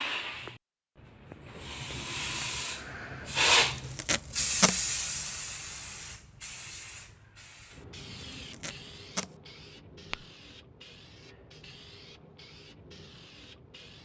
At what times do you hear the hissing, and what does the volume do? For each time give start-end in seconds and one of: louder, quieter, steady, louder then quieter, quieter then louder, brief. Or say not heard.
0.0-14.0 louder then quieter.